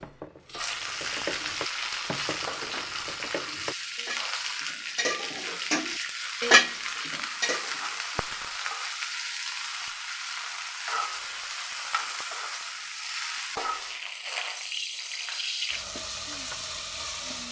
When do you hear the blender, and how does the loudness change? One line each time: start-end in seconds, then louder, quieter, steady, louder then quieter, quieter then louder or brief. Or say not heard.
not heard.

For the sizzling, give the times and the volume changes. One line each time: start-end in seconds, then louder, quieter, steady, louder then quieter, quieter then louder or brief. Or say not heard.
0.0-17.4 steady.